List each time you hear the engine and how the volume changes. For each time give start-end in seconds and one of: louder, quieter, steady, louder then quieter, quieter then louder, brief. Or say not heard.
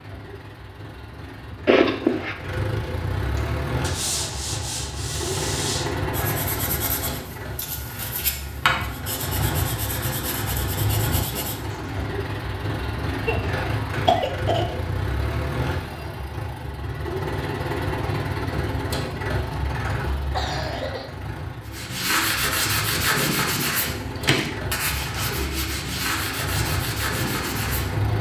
0.0-28.1 steady.